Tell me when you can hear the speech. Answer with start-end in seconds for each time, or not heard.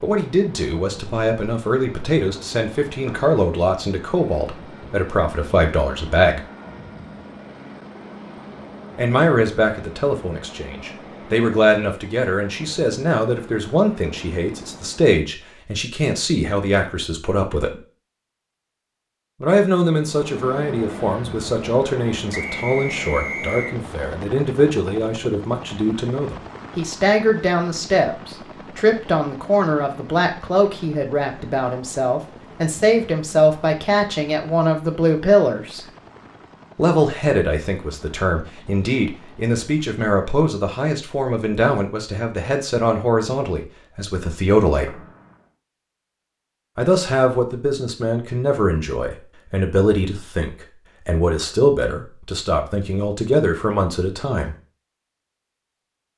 0.0-6.5, 8.9-17.8, 19.4-35.9, 36.8-45.0, 46.8-54.5.